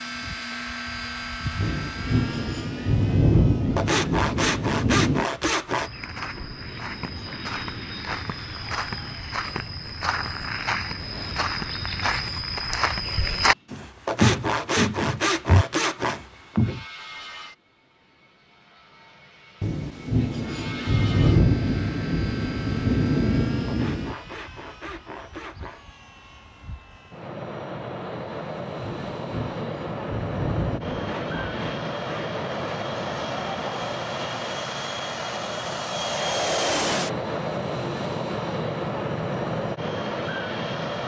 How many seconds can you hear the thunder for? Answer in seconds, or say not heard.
11 s.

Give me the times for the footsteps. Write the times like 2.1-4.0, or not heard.
5.8-16.9.